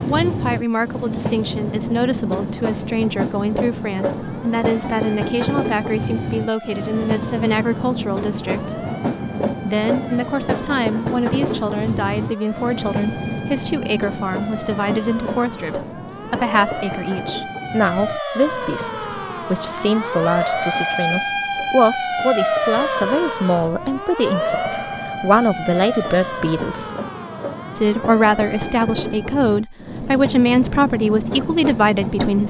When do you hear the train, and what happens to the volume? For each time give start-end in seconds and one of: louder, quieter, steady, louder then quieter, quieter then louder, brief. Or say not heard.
0.0-32.4 quieter then louder.